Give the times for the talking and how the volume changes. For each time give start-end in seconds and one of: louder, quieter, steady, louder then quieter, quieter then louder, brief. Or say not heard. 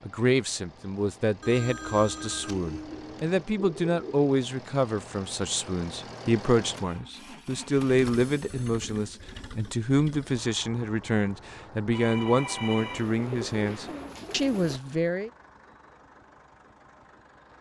0.1-15.3 steady.